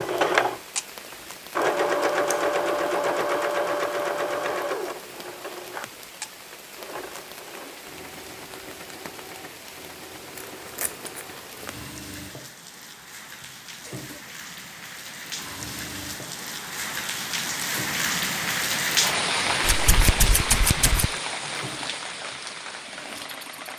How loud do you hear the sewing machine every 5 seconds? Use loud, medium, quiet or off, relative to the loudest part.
loud, quiet, quiet, quiet, quiet.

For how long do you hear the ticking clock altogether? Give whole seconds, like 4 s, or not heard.
not heard.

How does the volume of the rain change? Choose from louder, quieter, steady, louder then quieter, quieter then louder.
louder.